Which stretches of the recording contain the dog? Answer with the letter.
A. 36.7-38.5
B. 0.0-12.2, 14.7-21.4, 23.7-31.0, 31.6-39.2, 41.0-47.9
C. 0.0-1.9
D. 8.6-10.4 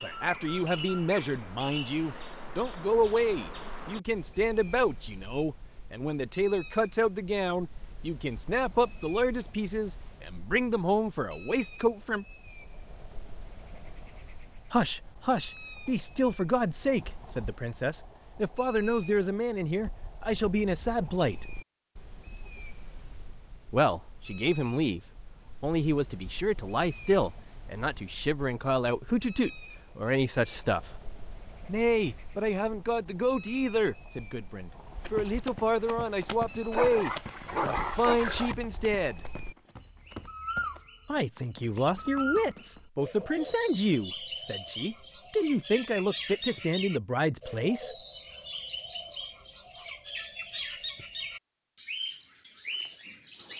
A.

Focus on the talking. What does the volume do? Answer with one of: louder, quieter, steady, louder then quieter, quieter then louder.
steady.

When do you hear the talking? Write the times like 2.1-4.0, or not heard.
0.0-12.2, 14.7-21.4, 23.7-31.0, 31.6-39.2, 41.0-47.9.